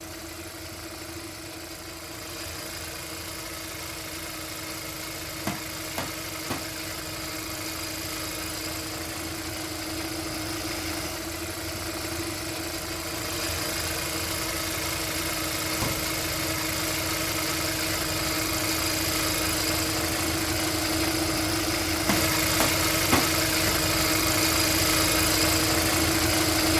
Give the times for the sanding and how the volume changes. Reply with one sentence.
The sanding can't be heard in this clip.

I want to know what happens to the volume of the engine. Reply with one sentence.
The loudness of the engine goes up.